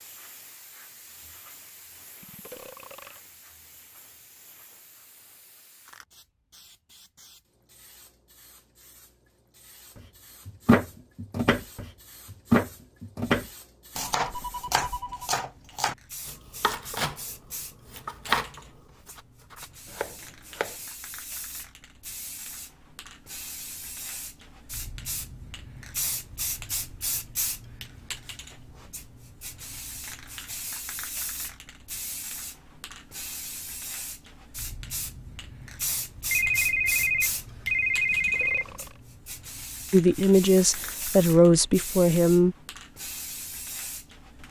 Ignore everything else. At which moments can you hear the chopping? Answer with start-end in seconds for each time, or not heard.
10.4-20.8.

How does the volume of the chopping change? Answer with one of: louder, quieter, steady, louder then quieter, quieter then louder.
quieter.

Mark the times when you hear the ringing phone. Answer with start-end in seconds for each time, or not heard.
14.2-15.3, 36.3-38.9.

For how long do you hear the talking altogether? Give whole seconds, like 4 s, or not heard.
3 s.